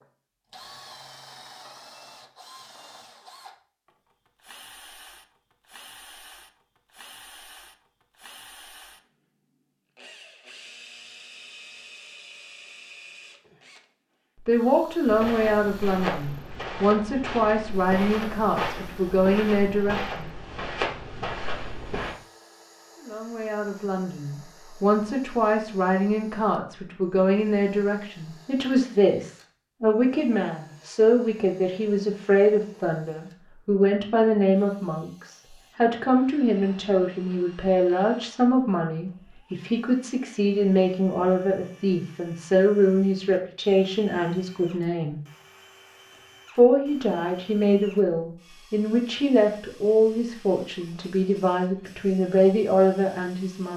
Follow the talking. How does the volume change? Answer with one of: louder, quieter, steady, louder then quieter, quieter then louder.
steady.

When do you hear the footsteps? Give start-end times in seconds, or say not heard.
15.1-22.1.